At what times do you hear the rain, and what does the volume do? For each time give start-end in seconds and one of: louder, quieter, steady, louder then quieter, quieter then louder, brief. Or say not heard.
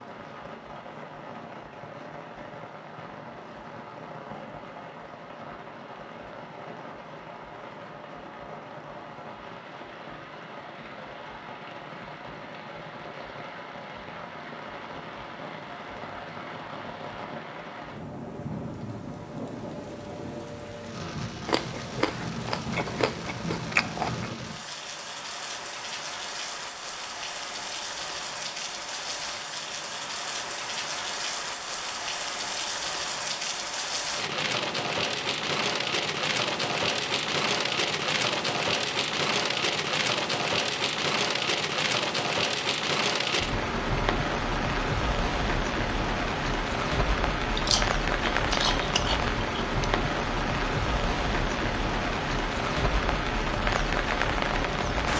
0.0-55.1 louder.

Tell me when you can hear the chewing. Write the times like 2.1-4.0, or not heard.
21.4-24.4, 47.5-49.9.